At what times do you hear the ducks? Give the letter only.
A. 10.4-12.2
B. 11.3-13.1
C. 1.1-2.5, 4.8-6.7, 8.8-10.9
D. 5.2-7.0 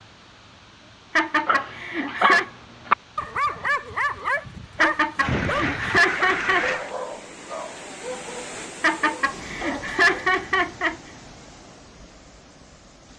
D.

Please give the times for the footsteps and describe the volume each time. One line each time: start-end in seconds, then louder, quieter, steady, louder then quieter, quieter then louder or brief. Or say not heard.
not heard.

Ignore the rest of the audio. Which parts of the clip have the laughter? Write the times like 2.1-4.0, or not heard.
1.1-2.5, 4.8-6.7, 8.8-10.9.